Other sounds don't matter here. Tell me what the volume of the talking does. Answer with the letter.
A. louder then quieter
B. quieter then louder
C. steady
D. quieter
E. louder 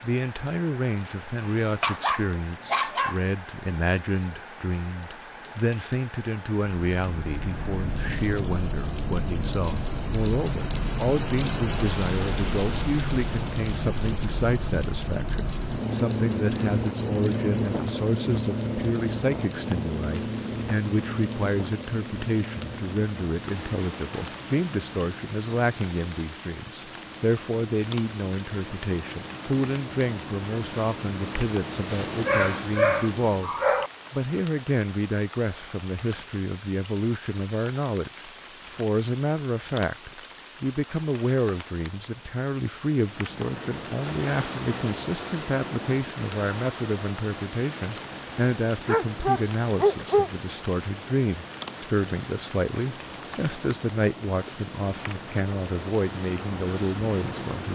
C.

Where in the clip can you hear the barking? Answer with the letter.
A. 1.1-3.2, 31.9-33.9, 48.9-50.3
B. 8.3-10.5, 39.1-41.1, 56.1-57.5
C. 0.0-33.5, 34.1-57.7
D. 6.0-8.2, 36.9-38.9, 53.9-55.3
A.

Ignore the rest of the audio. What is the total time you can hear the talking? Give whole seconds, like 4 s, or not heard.
57 s.